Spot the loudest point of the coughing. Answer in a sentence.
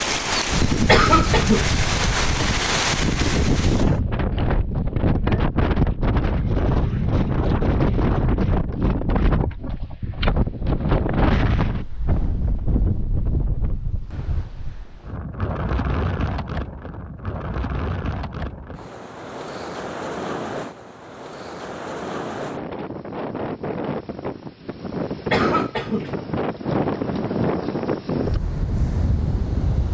The loudest moment of the coughing is at 1 second.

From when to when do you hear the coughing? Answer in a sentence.
You can hear the coughing from 0.8 to 1.8 s and from 25.3 to 26.1 s.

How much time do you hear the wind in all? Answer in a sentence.
The wind can be heard for 30 seconds in total.